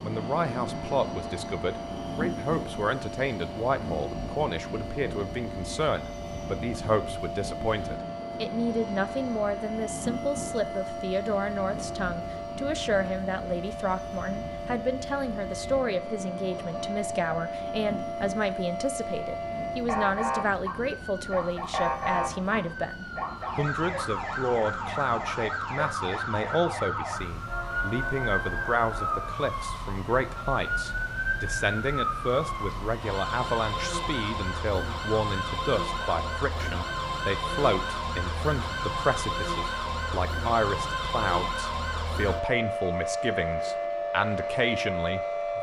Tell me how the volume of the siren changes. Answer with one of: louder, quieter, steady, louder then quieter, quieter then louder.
louder.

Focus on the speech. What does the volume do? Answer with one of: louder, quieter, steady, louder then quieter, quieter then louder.
steady.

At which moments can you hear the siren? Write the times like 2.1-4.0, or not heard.
0.1-45.5.